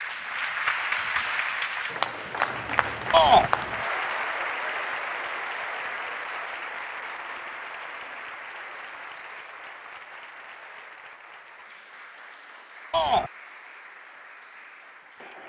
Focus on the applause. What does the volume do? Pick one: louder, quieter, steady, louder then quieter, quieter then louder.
quieter.